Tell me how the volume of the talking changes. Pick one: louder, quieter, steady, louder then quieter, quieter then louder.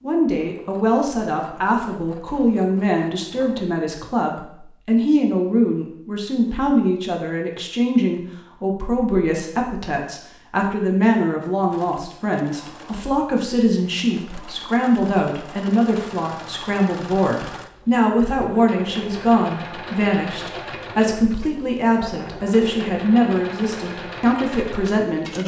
steady.